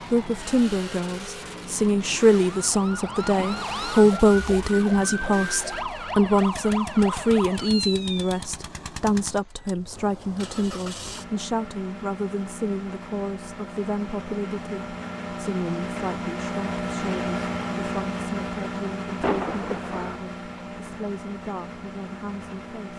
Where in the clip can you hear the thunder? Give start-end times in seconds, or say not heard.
19.2-20.2.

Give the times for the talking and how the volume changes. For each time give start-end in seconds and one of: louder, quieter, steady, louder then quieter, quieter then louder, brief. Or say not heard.
0.1-22.9 quieter.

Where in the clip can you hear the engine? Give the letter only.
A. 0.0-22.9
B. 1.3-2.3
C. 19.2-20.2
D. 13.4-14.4
A.